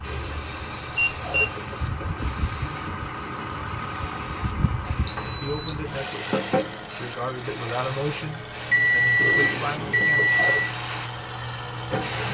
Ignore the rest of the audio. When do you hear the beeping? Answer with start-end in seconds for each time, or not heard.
0.9-1.6, 5.0-6.0, 8.7-10.8.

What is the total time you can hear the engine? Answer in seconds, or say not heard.
12 s.